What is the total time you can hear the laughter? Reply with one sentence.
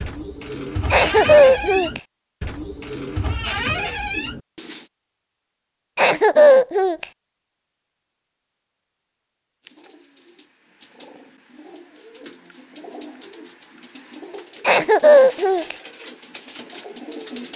You can hear the laughter for 3 seconds altogether.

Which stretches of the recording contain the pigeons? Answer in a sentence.
The pigeons can be heard from 0.0 to 4.8 s and from 9.6 to 17.5 s.